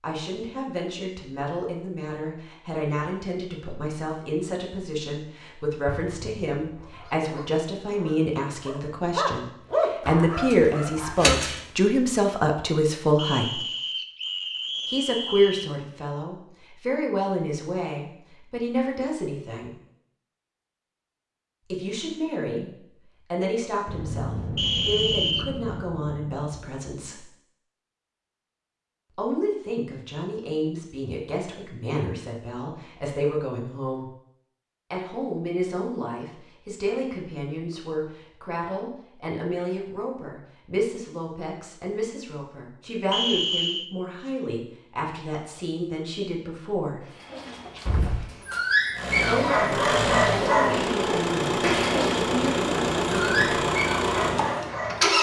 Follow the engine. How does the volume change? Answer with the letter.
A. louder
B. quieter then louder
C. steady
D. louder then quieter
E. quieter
C.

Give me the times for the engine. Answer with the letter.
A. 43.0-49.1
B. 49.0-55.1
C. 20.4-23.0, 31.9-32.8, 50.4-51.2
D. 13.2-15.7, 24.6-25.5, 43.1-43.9
B.